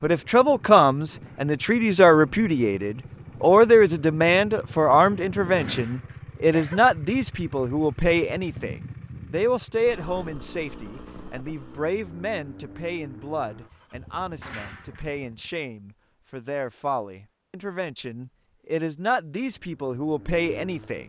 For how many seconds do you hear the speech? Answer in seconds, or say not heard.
21 s.